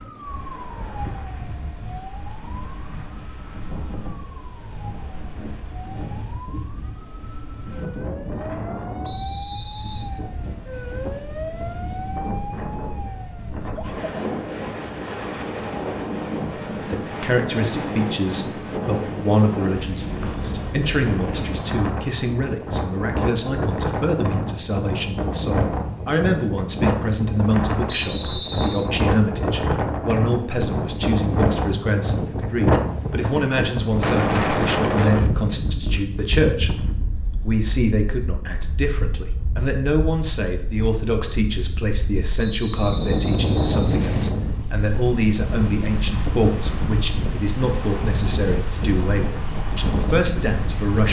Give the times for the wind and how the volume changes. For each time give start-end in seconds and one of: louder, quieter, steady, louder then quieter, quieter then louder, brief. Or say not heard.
0.0-51.0 louder.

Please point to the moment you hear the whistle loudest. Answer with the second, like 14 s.
28 s.